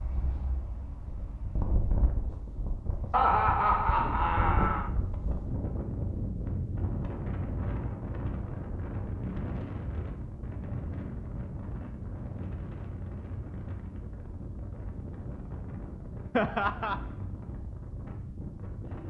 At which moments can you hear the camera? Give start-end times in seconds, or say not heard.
not heard.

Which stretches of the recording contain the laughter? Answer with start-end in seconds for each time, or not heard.
3.1-4.9, 16.4-17.0.